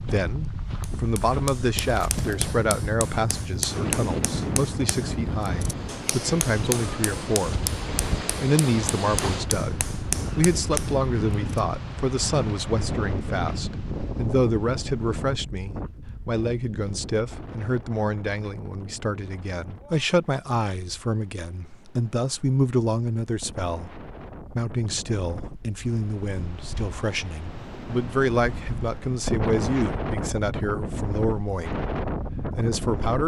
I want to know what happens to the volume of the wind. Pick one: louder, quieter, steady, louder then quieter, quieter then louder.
quieter then louder.